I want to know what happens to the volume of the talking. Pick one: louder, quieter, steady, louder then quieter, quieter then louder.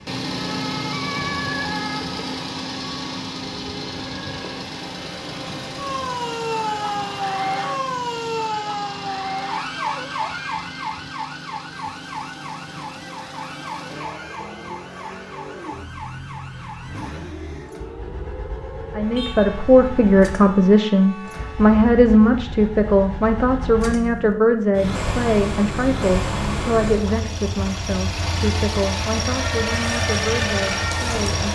quieter.